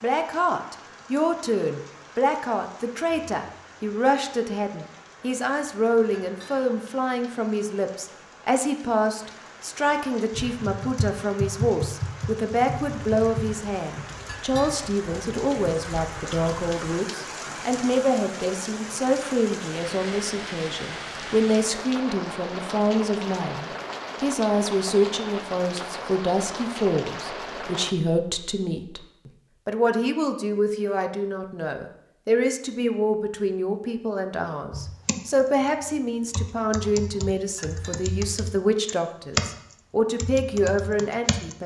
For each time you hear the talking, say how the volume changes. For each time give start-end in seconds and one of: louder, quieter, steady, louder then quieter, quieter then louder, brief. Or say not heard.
0.0-41.6 steady.